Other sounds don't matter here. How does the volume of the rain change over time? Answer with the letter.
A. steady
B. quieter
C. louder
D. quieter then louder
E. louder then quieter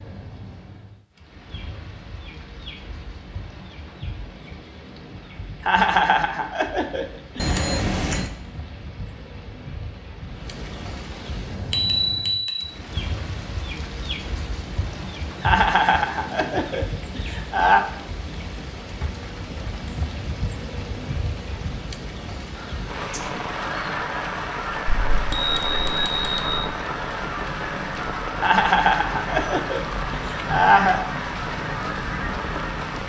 C.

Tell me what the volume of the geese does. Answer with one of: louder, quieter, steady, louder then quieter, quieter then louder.
steady.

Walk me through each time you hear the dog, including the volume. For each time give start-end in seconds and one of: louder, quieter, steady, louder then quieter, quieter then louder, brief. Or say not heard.
not heard.